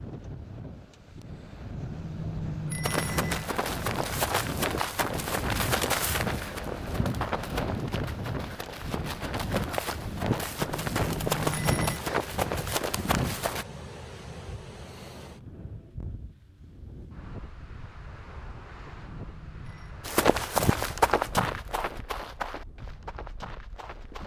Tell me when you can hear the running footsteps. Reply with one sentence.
You can hear the running footsteps from 2.8 to 13.7 s and from 20.1 to 24.2 s.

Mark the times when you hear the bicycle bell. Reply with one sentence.
The bicycle bell can be heard from 1.8 to 3.5 s, from 10.6 to 12.0 s and from 18.7 to 20.0 s.